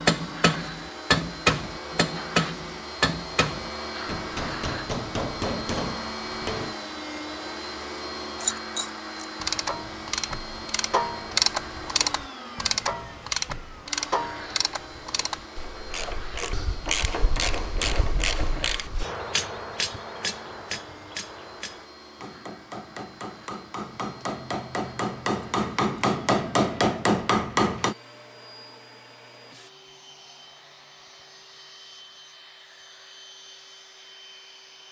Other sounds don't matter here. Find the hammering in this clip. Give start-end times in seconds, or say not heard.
0.0-6.8, 19.0-27.9.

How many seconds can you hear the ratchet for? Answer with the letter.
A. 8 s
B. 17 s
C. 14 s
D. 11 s
D.